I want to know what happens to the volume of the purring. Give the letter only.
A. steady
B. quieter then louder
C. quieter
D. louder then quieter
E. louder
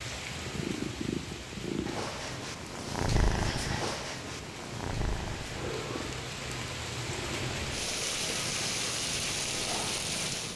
C.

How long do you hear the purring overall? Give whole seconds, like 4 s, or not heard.
10 s.